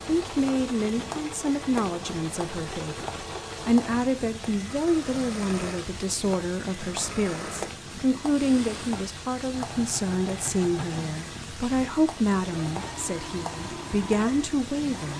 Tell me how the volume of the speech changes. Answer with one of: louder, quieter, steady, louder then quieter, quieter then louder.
steady.